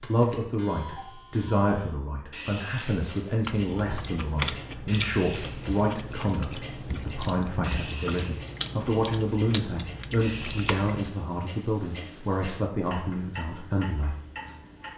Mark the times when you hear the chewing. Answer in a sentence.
The chewing can be heard from 3.4 to 11.0 s.